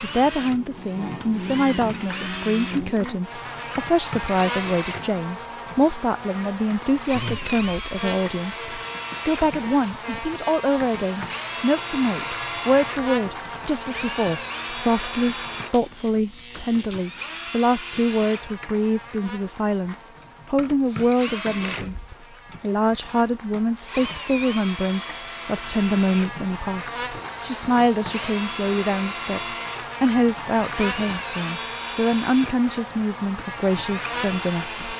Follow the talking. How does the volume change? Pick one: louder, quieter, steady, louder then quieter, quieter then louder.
steady.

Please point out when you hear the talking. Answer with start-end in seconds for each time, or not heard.
0.0-34.8.